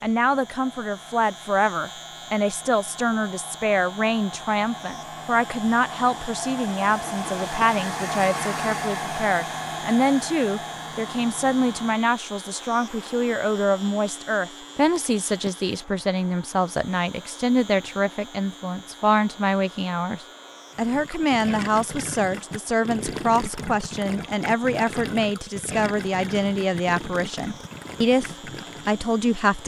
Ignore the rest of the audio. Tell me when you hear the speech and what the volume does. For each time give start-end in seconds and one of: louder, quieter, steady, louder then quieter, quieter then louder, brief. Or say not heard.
0.0-29.6 steady.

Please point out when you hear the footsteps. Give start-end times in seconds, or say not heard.
not heard.